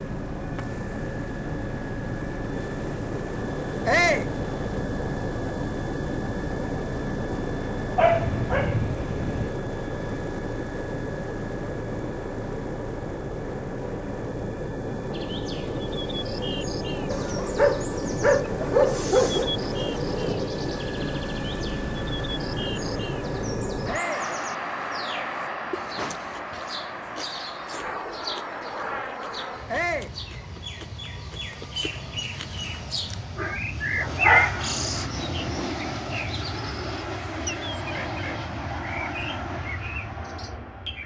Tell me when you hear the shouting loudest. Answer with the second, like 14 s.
4 s.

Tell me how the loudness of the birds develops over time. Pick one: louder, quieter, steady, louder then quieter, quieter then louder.
louder.